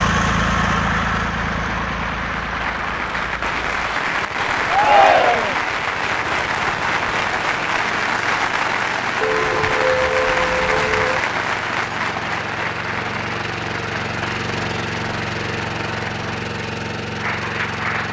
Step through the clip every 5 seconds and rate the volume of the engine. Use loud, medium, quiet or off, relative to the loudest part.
loud, medium, medium, loud.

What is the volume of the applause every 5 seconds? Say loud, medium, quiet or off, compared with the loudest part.
loud, loud, loud, medium.